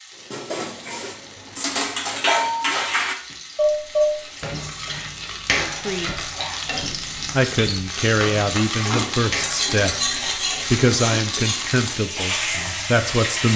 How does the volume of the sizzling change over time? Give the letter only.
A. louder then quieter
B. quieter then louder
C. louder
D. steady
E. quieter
C.